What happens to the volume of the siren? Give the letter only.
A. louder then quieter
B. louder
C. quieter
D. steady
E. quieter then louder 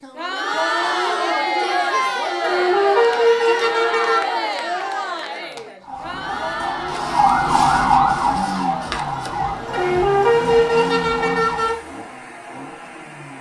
A.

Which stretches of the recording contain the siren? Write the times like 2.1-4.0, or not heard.
5.8-11.8.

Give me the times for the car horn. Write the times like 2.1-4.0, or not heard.
2.4-4.3, 9.7-11.8.